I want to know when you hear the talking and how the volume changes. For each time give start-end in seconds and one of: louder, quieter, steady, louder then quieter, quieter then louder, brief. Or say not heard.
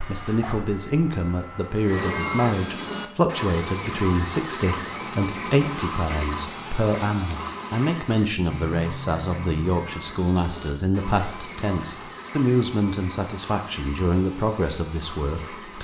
0.1-15.8 steady.